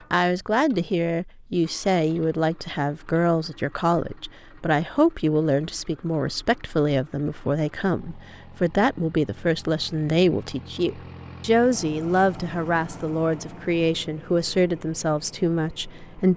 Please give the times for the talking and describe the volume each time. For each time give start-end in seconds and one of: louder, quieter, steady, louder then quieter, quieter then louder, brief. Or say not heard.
0.1-16.3 steady.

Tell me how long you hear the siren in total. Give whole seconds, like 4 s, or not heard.
not heard.